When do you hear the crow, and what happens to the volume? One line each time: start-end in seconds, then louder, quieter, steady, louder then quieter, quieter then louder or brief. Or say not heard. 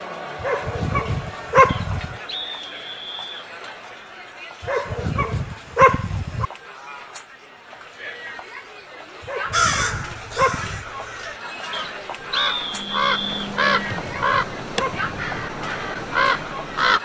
9.5-16.9 louder.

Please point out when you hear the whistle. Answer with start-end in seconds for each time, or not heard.
1.6-3.5, 11.7-13.5.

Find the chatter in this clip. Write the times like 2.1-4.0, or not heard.
0.0-16.9.